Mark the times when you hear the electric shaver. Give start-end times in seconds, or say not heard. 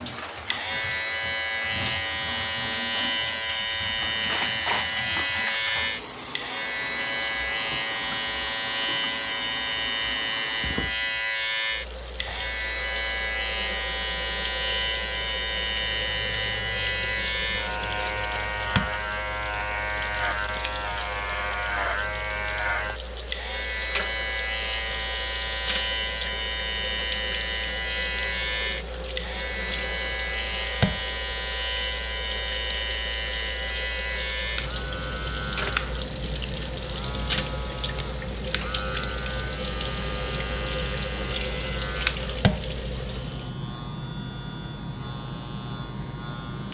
0.0-46.6.